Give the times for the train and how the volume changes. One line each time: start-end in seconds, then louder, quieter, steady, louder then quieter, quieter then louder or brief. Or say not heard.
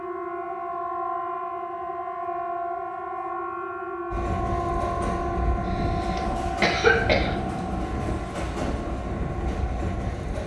4.1-10.4 steady.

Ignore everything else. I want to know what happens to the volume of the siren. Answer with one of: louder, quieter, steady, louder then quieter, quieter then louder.
quieter.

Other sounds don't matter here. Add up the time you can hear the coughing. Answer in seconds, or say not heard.
2 s.